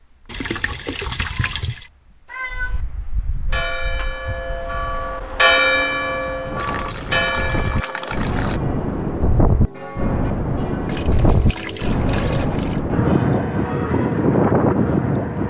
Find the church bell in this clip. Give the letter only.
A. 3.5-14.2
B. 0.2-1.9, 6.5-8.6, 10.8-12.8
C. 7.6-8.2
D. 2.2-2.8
A.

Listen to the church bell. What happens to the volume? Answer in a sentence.
The loudness of the church bell goes down.